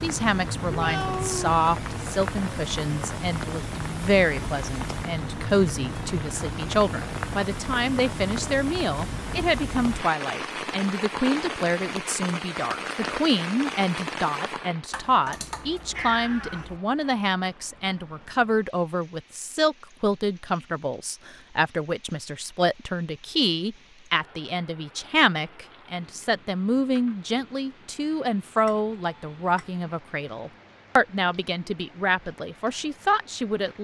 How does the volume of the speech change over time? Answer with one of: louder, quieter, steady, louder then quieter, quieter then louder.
steady.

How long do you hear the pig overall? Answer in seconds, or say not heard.
not heard.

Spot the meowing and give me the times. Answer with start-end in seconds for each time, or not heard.
0.7-1.6, 14.9-16.8, 28.6-29.8.